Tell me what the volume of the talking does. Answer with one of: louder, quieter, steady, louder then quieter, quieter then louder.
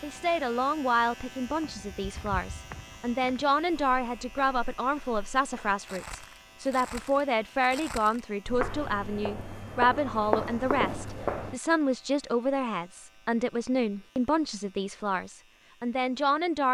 steady.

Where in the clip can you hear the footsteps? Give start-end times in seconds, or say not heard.
1.4-11.6.